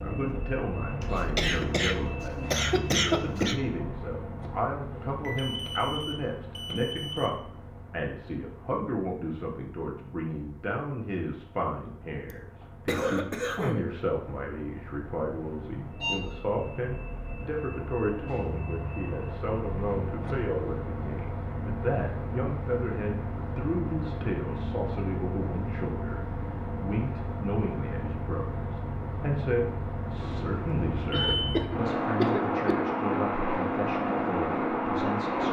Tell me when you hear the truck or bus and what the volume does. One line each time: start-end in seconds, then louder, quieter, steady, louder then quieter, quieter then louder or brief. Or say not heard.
0.0-35.4 quieter then louder.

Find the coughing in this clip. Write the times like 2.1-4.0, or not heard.
1.0-3.5, 12.3-13.9, 31.1-32.8.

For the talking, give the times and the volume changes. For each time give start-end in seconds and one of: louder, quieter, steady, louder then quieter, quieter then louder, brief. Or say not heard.
0.0-35.4 steady.